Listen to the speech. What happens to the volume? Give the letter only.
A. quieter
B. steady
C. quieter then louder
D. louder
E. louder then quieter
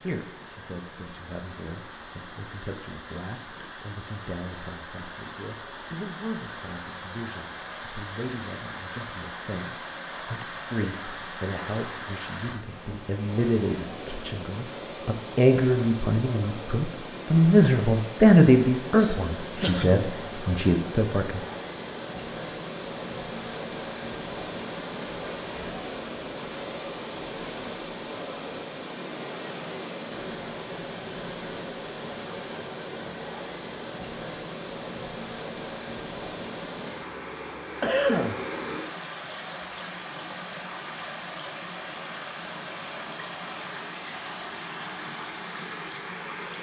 D.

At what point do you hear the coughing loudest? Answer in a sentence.
The volume of the coughing peaks at 38 seconds.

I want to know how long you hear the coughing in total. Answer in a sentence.
You can hear the coughing for 3 seconds altogether.